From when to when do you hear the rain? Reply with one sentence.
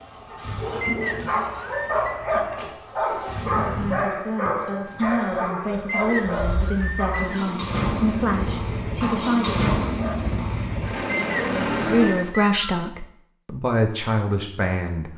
The rain can't be heard in this clip.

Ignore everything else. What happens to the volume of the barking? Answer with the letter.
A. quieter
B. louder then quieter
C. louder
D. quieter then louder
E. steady
A.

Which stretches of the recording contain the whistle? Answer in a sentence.
The whistle can be heard from 0.8 to 2.1 s, from 5.8 to 7.5 s and from 11.1 to 12.9 s.